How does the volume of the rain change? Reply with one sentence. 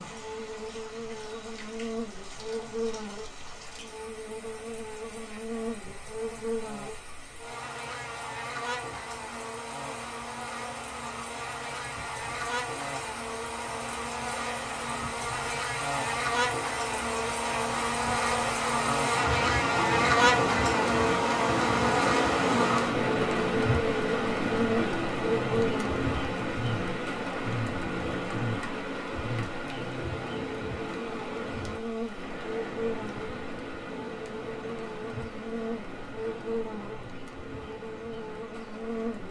The loudness of the rain goes up, then down.